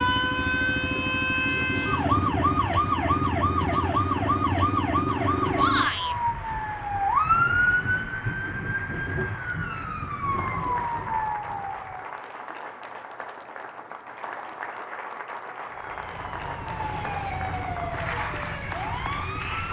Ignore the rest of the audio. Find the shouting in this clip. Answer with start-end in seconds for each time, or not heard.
5.5-6.2.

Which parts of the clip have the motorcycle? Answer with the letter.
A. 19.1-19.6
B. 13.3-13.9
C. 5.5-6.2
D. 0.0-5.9
D.